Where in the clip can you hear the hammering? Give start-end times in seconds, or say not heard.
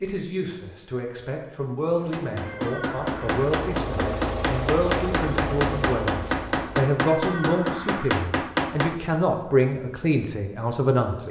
1.9-9.0.